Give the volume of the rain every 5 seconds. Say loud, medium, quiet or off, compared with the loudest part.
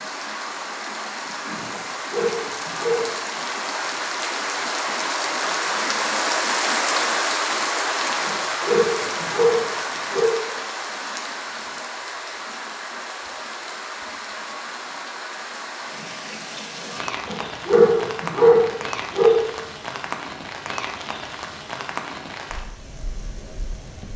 medium, loud, medium, medium, medium.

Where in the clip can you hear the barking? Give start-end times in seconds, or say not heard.
1.7-3.1, 8.2-10.2, 17.2-19.3.